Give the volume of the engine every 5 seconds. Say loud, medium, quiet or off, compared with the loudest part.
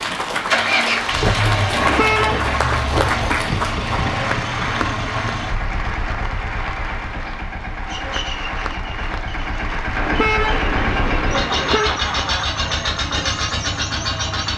loud, medium, loud.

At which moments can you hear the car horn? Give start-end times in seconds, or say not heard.
1.8-2.5, 9.9-12.0.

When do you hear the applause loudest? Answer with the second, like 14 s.
3 s.